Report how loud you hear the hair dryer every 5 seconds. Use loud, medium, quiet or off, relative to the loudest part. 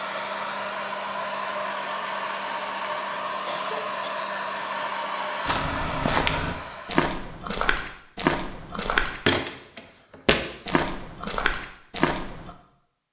loud, loud, off.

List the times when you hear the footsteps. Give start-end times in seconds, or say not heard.
5.5-12.5.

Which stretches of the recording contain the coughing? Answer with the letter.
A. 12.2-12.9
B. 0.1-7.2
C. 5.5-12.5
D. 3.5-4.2
D.